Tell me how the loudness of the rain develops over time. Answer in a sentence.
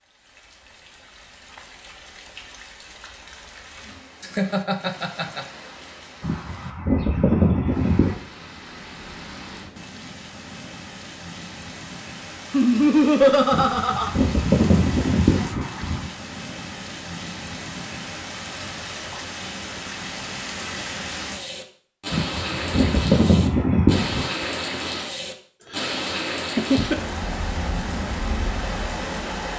The loudness of the rain goes up.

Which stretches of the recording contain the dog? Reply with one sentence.
The dog can't be heard in this clip.